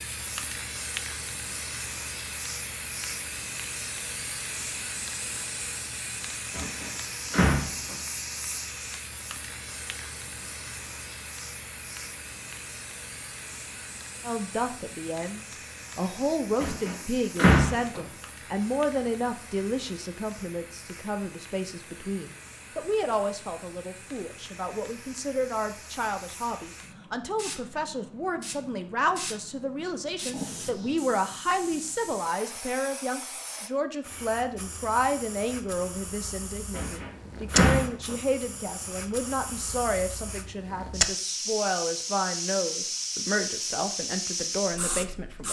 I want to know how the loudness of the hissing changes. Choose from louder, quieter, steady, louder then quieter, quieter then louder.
quieter then louder.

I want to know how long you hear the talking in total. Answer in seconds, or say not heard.
31 s.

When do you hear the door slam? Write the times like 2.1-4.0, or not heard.
6.5-8.0, 16.6-18.0, 36.8-38.6.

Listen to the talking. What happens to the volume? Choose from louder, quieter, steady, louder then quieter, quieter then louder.
steady.